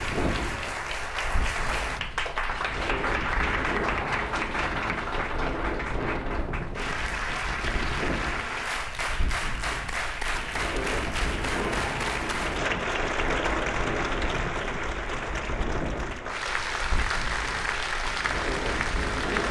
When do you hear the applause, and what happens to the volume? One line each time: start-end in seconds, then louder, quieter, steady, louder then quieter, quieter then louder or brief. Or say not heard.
0.0-19.4 steady.